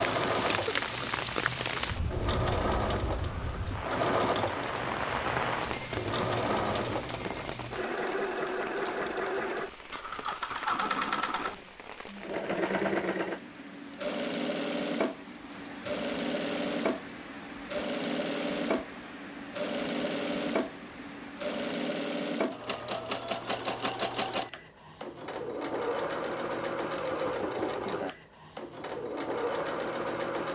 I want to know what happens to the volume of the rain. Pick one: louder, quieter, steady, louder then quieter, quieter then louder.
quieter.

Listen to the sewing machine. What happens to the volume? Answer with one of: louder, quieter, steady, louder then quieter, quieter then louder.
steady.